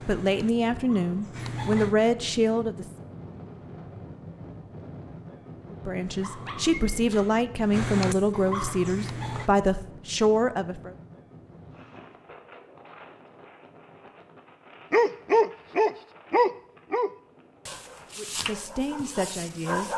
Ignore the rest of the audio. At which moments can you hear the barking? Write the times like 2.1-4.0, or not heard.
0.0-1.9, 6.0-9.5, 14.9-19.9.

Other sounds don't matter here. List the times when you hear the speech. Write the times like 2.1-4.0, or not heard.
0.1-2.9, 5.7-10.9, 18.1-19.9.